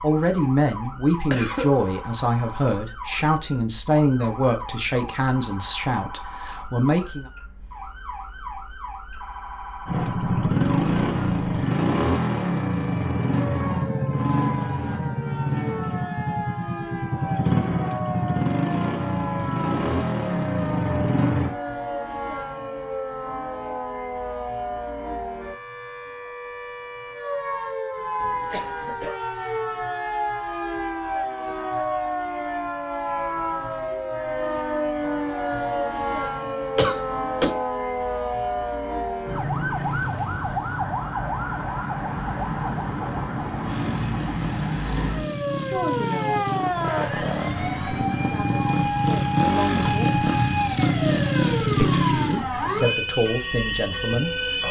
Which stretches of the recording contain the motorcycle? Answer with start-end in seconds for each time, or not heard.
9.8-21.6, 43.6-52.4.